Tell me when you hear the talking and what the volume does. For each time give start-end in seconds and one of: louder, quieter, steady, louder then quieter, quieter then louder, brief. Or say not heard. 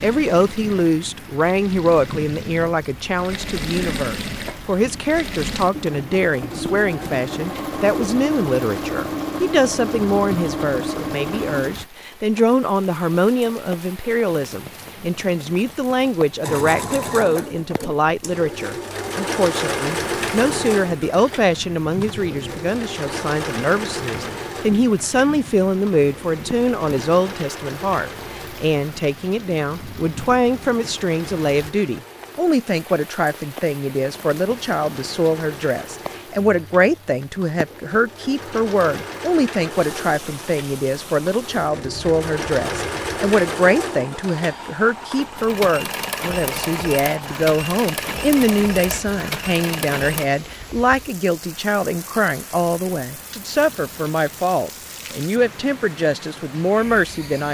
0.0-57.4 steady.